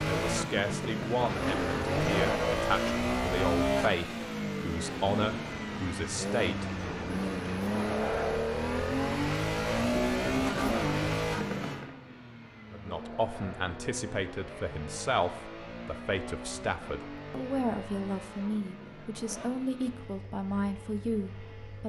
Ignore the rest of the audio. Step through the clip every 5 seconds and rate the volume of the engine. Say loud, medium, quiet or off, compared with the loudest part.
loud, loud, loud, quiet, quiet.